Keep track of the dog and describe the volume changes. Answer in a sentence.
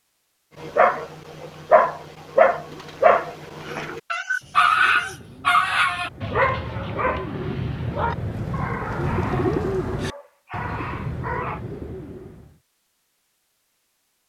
The volume of the dog goes down.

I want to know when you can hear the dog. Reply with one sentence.
The dog can be heard from 0.6 to 11.6 s.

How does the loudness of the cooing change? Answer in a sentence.
The volume of the cooing goes up, then down.